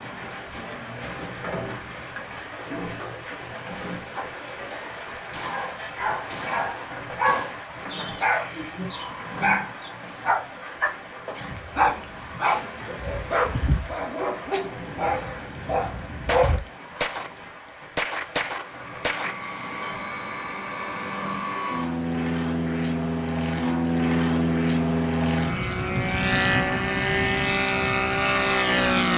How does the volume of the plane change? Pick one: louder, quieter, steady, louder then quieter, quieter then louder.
louder.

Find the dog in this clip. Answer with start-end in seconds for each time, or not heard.
5.5-16.6.